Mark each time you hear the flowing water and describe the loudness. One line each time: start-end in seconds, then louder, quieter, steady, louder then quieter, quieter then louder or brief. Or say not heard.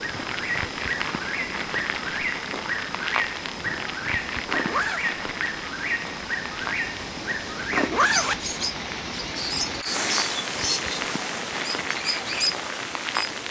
0.0-13.4 louder.